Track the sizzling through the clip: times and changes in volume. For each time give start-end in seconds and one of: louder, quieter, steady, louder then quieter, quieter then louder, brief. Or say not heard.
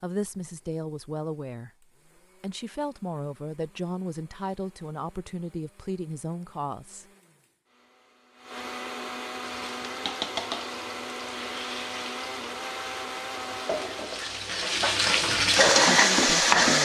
9.4-16.7 quieter then louder.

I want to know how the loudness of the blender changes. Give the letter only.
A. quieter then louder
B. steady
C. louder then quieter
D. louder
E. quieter
D.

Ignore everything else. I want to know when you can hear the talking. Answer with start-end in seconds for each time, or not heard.
0.0-1.7, 2.4-7.0, 15.2-16.7.